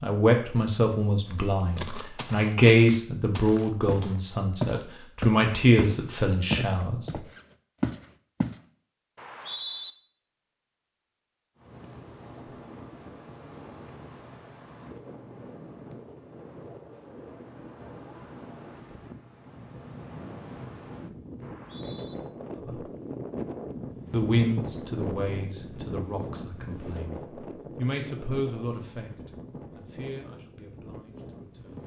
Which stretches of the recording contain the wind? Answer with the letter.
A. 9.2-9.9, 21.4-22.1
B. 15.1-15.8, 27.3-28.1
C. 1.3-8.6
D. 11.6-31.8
D.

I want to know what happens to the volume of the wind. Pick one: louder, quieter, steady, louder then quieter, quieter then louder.
louder then quieter.